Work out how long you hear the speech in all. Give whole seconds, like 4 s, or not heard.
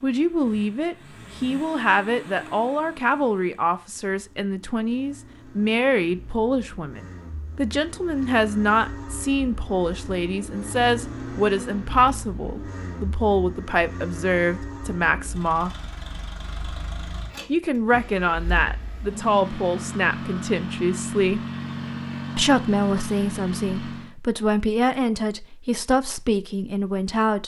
25 s.